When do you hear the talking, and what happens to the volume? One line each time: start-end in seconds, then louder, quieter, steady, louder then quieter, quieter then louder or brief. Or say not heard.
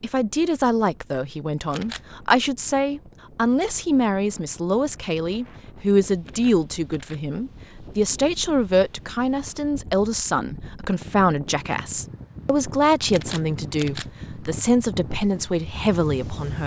0.0-16.6 steady.